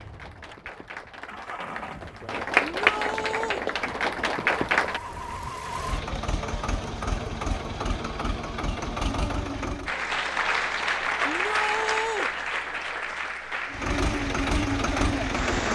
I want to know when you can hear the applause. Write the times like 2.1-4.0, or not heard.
0.0-5.0, 9.8-15.7.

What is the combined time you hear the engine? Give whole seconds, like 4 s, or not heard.
12 s.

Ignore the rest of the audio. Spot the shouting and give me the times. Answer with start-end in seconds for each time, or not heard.
2.6-3.6, 11.2-12.3.